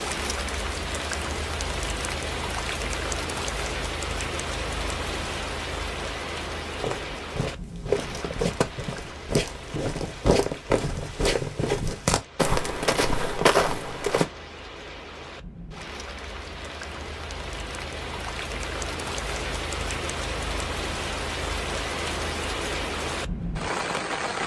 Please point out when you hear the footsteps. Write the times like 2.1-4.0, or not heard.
6.7-14.2.